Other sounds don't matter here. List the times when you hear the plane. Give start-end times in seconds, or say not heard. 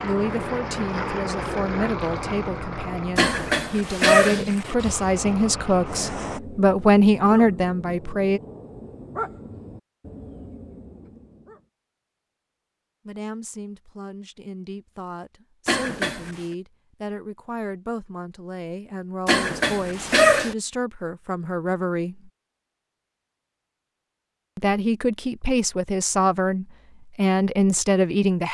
0.0-6.4.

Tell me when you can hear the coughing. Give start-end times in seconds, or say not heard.
3.1-4.5, 15.7-16.4, 19.2-20.6.